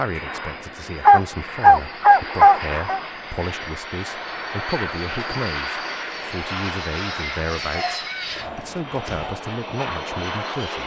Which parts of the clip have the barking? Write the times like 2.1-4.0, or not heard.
1.1-3.0, 7.7-9.4.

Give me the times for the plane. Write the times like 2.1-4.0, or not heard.
0.0-10.8.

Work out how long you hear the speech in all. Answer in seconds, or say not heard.
11 s.